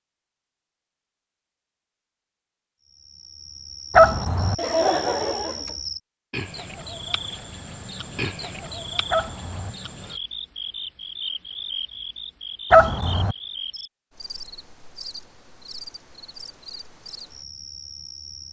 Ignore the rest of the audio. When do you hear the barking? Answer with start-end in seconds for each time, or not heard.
4.0-4.5, 9.1-9.8, 12.7-13.3.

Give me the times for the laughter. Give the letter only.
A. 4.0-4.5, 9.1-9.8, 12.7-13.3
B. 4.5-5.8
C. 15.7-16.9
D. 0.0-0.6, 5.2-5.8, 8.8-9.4
B.